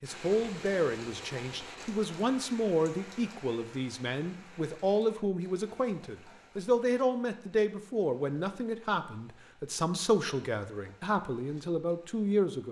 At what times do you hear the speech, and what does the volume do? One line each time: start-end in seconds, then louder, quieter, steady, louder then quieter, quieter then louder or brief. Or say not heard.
0.0-12.6 steady.